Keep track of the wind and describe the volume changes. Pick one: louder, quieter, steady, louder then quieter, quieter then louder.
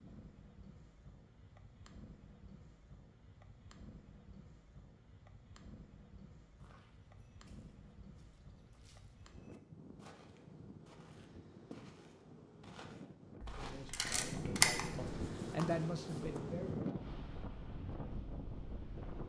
louder.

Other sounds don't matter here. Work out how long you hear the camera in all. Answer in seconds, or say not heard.
2 s.